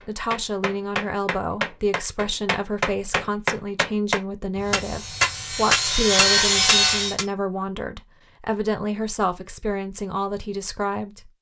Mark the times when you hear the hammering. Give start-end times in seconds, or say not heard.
0.0-7.2.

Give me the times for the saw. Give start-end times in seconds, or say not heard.
4.5-7.2.